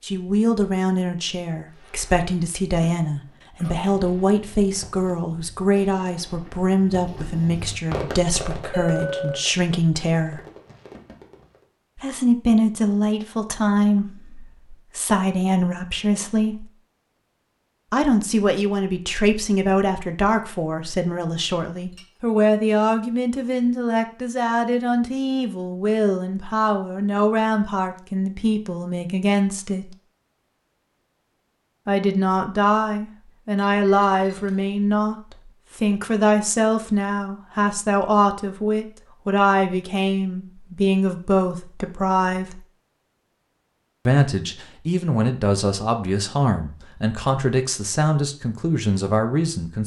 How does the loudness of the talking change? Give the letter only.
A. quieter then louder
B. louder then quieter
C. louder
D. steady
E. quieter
D.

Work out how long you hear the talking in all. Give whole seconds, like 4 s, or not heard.
44 s.